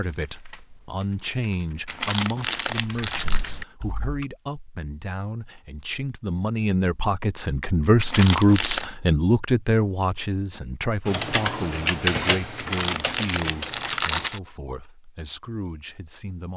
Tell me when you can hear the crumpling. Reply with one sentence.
The crumpling can be heard from 1.9 to 3.4 s, from 8.0 to 8.8 s and from 12.6 to 14.4 s.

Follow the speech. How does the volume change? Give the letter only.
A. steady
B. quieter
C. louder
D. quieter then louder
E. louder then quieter
E.